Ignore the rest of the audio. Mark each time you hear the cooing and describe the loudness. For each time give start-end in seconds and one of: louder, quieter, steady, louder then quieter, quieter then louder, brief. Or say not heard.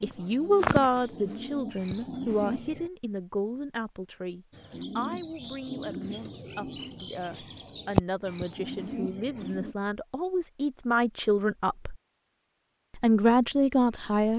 0.0-2.9 brief
4.5-9.8 louder then quieter.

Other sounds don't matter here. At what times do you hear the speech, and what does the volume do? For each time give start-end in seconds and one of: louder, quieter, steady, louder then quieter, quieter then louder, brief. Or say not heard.
0.0-11.9 quieter then louder
12.9-14.3 brief.